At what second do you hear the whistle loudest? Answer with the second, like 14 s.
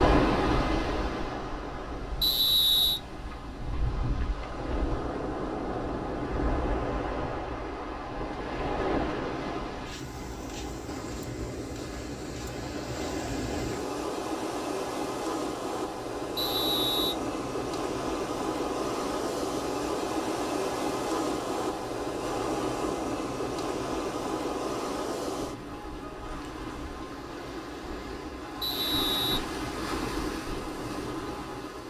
3 s.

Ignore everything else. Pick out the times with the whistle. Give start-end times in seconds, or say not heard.
2.2-3.0, 16.4-17.1, 28.6-29.9.